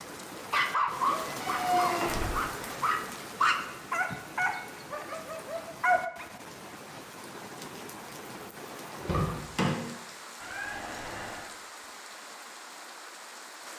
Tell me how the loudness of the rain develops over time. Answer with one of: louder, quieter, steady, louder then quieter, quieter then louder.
quieter.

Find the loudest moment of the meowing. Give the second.
2 s.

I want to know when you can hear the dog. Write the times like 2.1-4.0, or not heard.
0.5-6.2.